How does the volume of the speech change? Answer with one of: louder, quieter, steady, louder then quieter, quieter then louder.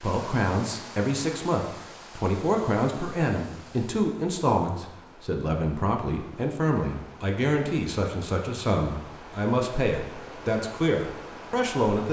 steady.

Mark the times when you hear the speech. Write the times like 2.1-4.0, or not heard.
0.0-12.0.